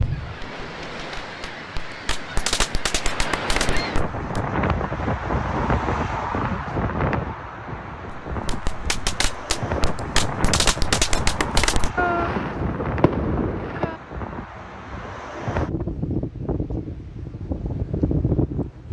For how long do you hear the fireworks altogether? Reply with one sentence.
The fireworks can be heard for 10 seconds in total.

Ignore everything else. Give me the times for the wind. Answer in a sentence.
The wind can be heard from 0.0 to 18.8 s.